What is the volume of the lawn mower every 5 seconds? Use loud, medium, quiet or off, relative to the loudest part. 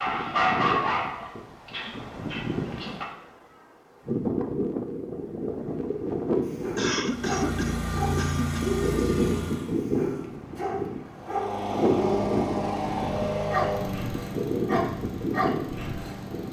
off, loud, loud, medium.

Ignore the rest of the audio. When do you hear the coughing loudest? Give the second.
7 s.